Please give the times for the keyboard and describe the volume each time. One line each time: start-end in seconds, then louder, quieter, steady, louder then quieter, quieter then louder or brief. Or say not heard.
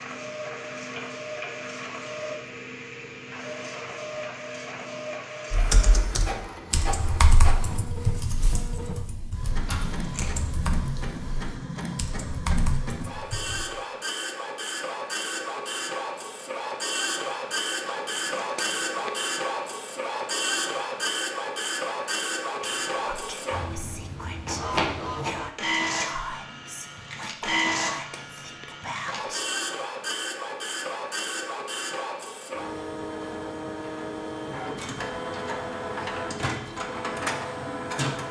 5.5-13.7 quieter.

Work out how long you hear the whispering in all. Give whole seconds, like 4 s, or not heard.
7 s.